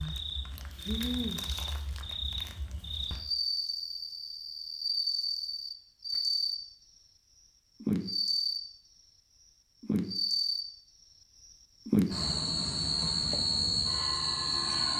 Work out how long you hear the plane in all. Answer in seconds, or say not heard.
3 s.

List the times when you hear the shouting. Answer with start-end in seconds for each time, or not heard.
not heard.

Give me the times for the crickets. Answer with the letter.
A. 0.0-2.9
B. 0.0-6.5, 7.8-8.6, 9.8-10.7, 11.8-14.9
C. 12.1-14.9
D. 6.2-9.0
B.